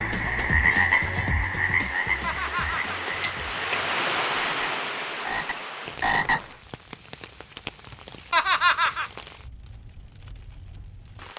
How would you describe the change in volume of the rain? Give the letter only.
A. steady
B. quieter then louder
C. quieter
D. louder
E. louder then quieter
E.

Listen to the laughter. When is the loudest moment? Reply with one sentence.
The volume of the laughter peaks at 9 seconds.